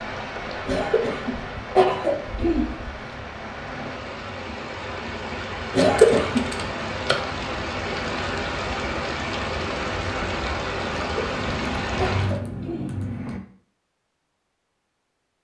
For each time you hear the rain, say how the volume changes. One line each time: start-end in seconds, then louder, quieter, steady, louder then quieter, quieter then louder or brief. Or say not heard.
0.0-12.4 louder.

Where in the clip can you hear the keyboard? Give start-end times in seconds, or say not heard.
5.8-7.2, 11.3-13.4.